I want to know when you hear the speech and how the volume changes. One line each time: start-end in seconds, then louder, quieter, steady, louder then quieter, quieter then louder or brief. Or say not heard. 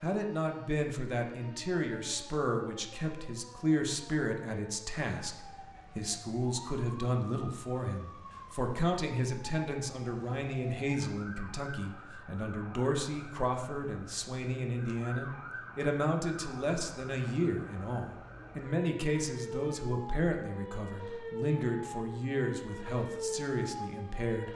0.0-24.5 steady.